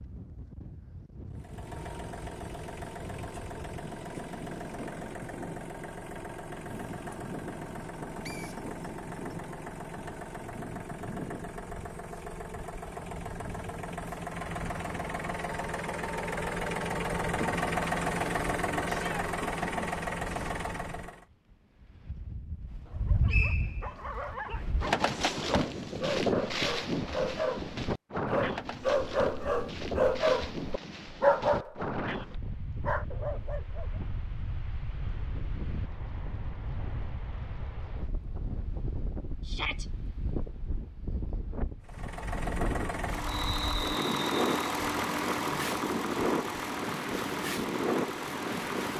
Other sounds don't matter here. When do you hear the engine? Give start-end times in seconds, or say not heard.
1.3-21.2, 41.8-48.9.